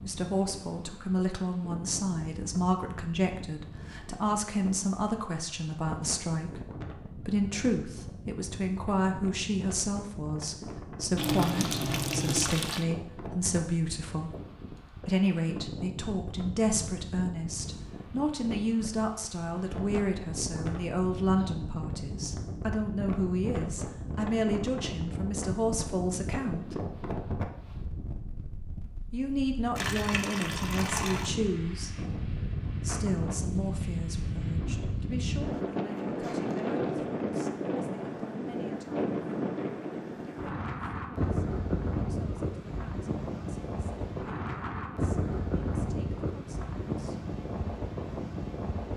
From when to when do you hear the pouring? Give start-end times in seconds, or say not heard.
11.2-12.8, 29.8-31.4.